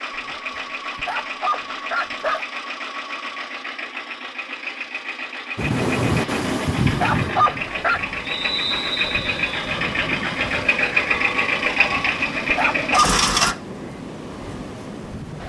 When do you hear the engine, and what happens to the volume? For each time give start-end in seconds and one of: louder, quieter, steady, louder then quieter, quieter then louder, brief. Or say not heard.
0.0-13.6 louder.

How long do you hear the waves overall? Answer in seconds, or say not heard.
10 s.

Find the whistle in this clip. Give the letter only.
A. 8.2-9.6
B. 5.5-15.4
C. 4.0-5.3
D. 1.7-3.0
A.